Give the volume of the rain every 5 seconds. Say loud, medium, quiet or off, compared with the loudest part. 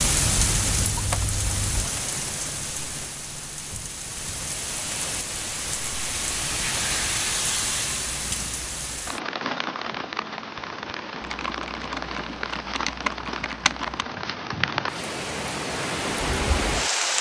loud, loud, medium, loud.